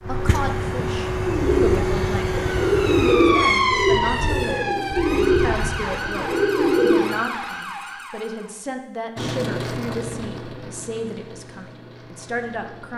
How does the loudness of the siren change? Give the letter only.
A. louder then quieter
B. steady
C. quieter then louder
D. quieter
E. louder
D.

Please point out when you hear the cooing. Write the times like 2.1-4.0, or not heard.
1.2-7.1.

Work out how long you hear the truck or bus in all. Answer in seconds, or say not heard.
11 s.